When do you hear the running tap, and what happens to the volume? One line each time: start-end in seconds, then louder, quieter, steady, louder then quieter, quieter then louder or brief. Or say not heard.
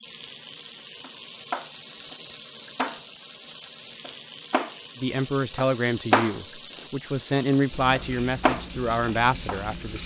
0.0-10.0 steady.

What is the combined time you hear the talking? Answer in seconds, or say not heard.
5 s.